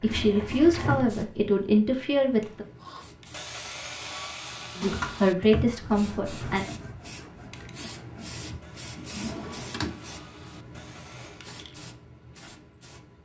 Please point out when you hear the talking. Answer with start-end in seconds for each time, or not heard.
0.0-2.6, 4.8-6.7.